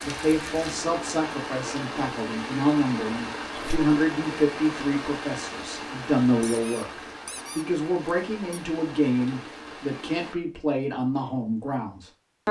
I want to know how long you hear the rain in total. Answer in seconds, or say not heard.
10 s.